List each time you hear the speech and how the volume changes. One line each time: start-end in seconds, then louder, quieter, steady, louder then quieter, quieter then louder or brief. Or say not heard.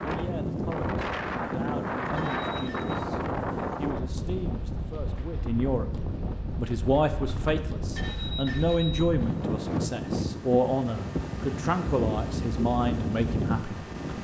0.0-13.8 louder.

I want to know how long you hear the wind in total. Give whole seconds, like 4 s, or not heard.
14 s.